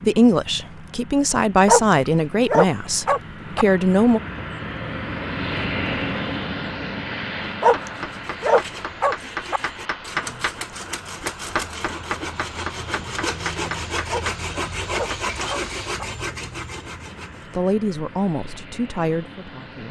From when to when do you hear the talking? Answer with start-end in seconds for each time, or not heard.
0.0-4.2, 17.5-19.8.